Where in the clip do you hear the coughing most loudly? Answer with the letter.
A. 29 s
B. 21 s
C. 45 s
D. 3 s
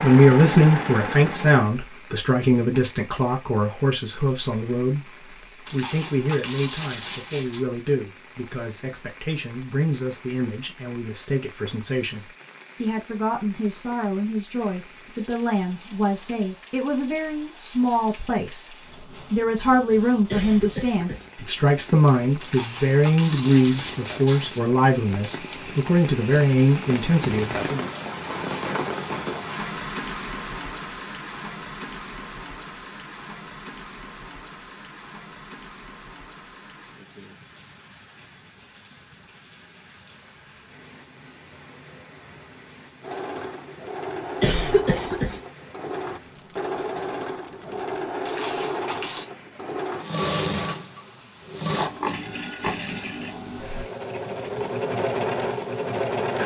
C.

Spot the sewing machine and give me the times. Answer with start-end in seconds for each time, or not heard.
0.0-1.8, 43.0-56.4.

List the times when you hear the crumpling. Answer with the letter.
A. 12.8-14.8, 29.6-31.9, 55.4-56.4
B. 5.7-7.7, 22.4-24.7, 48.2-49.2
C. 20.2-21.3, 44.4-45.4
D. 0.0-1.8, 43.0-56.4
B.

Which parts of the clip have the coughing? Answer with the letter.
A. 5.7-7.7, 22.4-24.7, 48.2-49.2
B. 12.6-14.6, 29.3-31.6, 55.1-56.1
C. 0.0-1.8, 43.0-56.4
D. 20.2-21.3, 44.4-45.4
D.